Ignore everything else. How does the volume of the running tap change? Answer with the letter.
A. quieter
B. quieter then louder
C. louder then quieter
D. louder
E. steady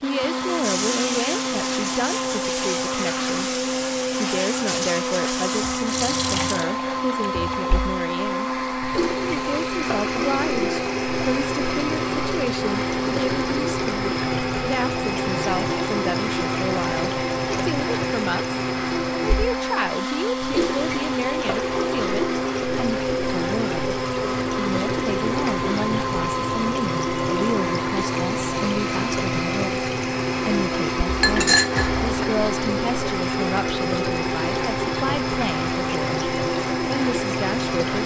E.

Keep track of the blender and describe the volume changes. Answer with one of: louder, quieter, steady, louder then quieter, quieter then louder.
steady.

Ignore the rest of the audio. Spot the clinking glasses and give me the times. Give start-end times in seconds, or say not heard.
31.1-32.2.